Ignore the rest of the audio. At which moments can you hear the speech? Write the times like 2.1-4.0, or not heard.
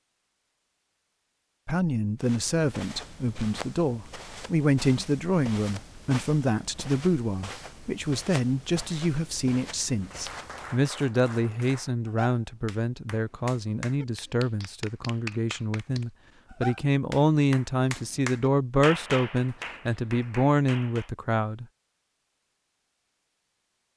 1.6-21.6.